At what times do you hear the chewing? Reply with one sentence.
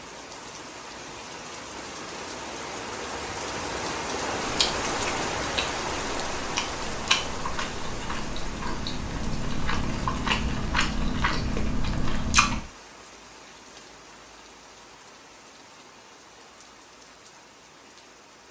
The chewing can be heard from 4.4 to 12.6 s.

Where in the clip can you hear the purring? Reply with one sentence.
The purring can't be heard in this clip.